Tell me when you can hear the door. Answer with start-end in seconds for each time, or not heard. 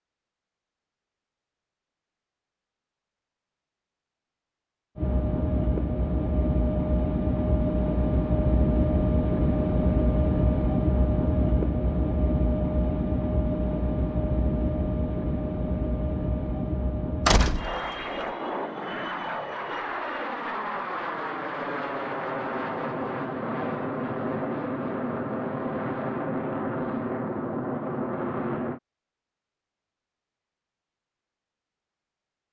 17.2-18.2.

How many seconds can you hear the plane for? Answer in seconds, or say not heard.
24 s.